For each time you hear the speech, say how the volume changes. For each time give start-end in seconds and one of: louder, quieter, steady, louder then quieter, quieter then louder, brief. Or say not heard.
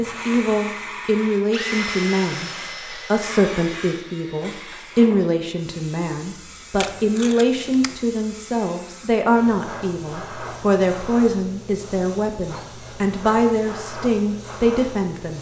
0.0-15.3 steady.